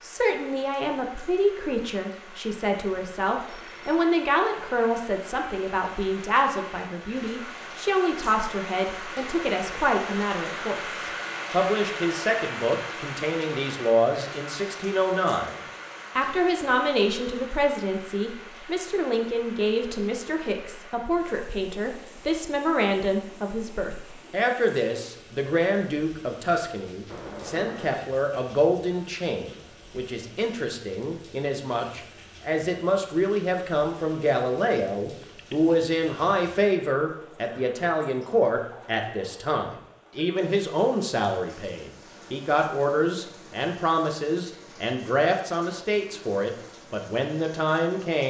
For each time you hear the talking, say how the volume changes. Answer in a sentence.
The talking can be heard from 0.0 to 15.6 s, at a steady volume; and from 16.1 to 48.2 s, at a steady volume.